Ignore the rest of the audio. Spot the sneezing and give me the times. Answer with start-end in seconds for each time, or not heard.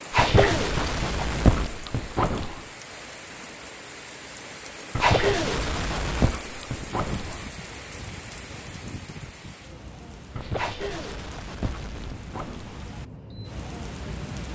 0.1-1.8, 5.0-6.4, 10.6-12.2.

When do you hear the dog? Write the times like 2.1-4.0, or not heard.
0.1-2.6, 5.0-7.5, 10.3-12.8.